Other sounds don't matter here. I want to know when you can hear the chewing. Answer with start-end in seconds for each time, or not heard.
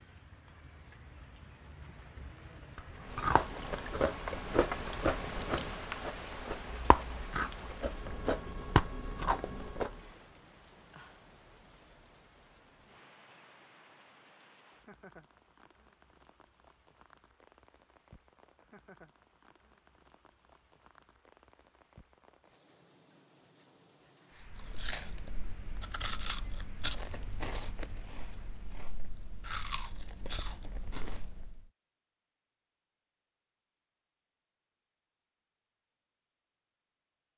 2.8-10.1, 24.4-31.6.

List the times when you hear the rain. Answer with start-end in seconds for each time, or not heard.
0.0-28.7.